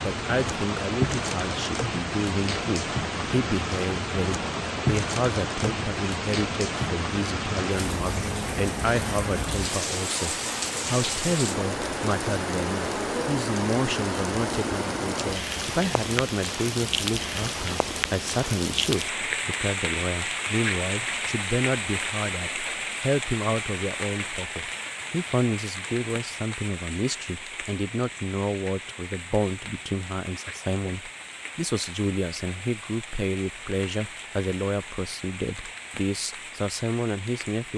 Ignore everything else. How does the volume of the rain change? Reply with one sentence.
The loudness of the rain goes down.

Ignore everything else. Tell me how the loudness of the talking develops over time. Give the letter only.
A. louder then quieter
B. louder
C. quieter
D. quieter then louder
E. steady
E.